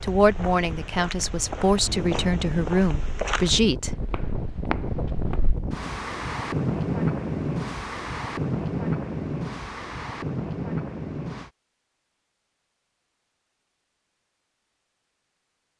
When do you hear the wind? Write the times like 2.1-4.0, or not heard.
0.0-11.5.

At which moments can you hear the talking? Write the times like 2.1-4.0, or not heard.
0.0-3.9.